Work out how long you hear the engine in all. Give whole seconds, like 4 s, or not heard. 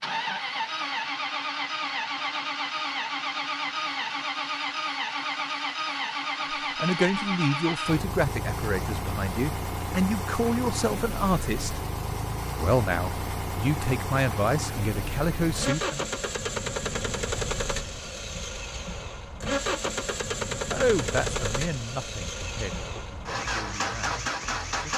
25 s.